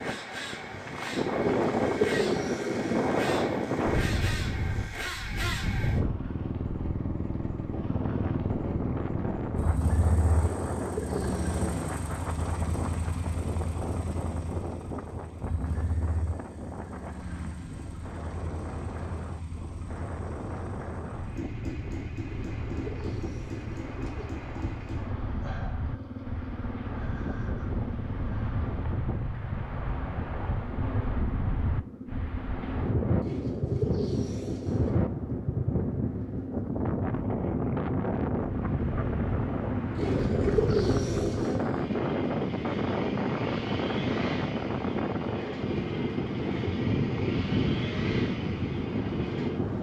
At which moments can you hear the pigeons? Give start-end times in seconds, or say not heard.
1.4-3.1, 10.3-11.7, 22.2-24.3, 33.2-35.0, 40.0-41.6.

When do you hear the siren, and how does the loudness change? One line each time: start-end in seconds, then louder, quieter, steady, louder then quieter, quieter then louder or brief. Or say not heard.
not heard.